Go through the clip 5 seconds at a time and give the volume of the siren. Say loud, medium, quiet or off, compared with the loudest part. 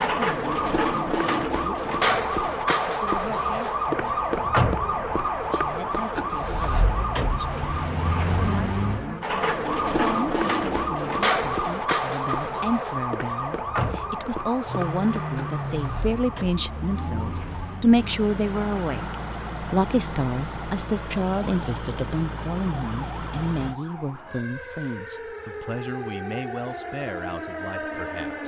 loud, loud, loud, quiet, quiet, medium.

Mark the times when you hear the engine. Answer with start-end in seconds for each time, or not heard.
14.7-23.8.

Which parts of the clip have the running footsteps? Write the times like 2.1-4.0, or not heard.
not heard.